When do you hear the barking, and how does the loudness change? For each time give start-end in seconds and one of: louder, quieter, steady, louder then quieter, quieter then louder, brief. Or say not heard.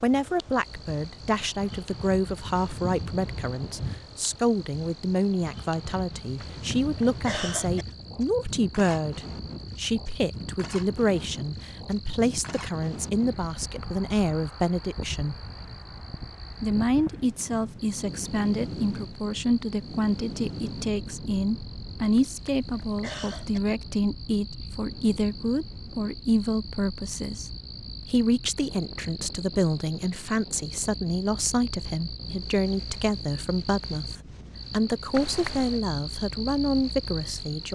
not heard.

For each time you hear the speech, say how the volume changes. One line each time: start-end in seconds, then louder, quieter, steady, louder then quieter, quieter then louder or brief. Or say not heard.
0.0-15.3 steady
16.6-37.7 steady.